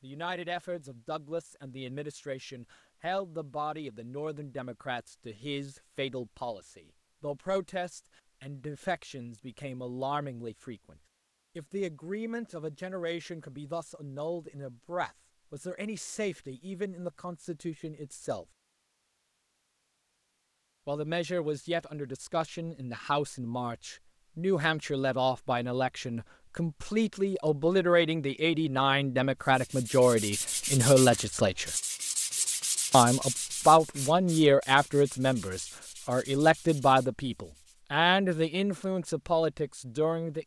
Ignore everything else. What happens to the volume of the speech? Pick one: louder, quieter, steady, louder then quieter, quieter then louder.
louder.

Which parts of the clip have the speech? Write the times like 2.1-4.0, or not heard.
0.0-10.9, 11.6-18.4, 20.9-31.7, 32.9-40.4.